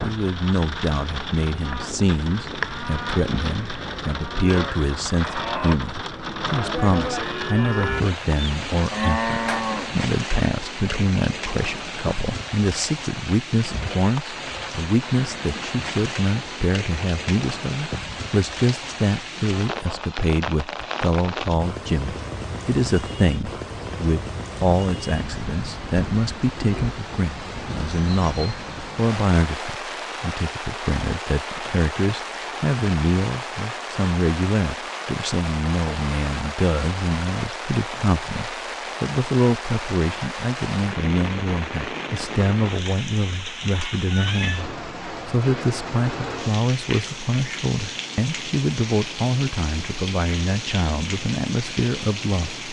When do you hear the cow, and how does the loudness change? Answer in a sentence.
The cow can be heard from 1.6 to 10.0 s, getting louder.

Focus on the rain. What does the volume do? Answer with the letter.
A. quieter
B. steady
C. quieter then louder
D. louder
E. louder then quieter
B.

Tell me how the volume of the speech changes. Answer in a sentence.
The loudness of the speech stays about the same.